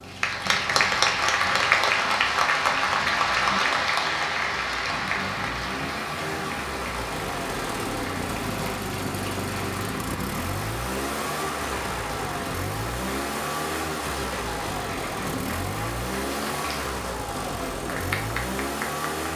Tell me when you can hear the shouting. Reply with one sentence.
The shouting can't be heard in this clip.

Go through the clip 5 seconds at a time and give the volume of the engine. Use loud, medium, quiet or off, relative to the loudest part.
quiet, loud, loud, loud.